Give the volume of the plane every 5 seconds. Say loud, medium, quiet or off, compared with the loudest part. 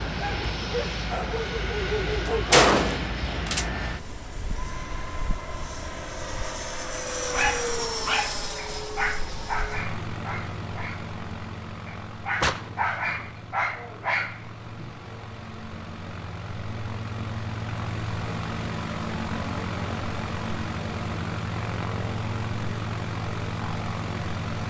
loud, loud, medium, loud, loud.